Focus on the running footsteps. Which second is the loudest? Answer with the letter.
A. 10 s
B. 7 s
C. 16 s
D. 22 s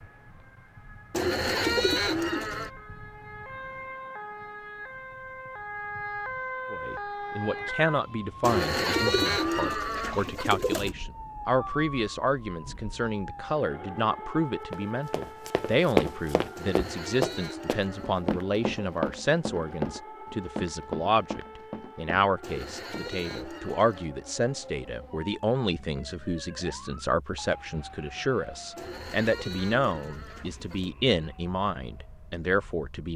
C.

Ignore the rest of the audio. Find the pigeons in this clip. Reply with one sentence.
You can hear the pigeons from 1.1 to 2.7 s, from 8.4 to 10.9 s, from 16.6 to 18.2 s, from 22.4 to 24.1 s and from 28.8 to 30.9 s.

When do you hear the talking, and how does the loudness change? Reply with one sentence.
You can hear the talking from 6.7 to 33.1 s, at a steady volume.